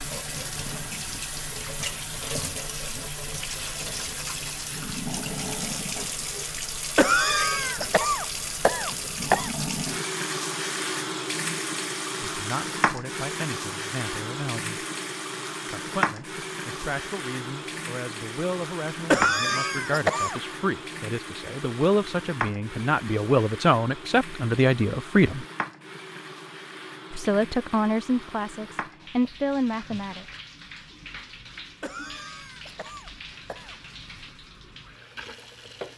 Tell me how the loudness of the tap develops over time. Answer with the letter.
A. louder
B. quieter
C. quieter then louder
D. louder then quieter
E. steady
B.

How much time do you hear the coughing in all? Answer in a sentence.
You can hear the coughing for 6 seconds altogether.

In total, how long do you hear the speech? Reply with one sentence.
You can hear the speech for 16 seconds altogether.